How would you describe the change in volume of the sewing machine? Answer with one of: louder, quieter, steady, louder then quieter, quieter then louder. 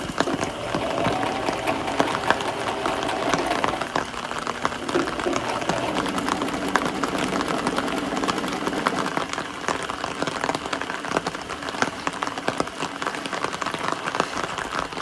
quieter.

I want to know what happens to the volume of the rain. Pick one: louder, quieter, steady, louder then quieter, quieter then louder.
steady.